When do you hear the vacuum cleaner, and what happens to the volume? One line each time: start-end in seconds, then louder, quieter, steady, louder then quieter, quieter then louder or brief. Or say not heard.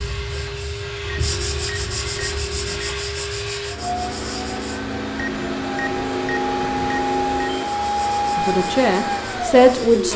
0.0-10.1 louder.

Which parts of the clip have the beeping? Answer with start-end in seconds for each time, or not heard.
1.0-3.0, 5.1-7.7.